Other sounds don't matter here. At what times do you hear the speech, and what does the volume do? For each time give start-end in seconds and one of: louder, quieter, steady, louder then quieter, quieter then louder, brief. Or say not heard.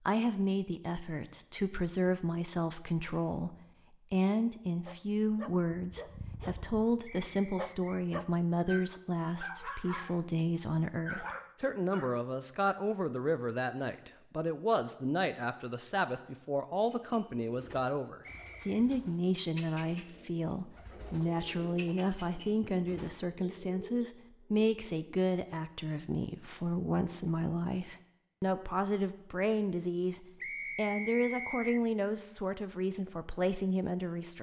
0.1-34.3 steady.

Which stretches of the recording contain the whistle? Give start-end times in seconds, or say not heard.
7.1-8.1, 18.2-18.9, 30.4-31.8.